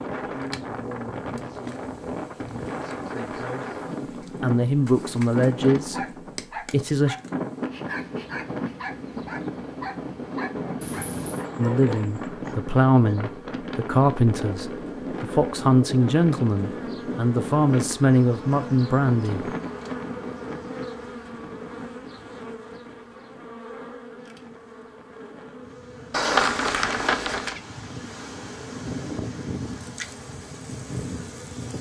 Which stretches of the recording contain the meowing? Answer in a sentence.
You can hear the meowing from 10.8 to 11.4 s and from 26.1 to 27.6 s.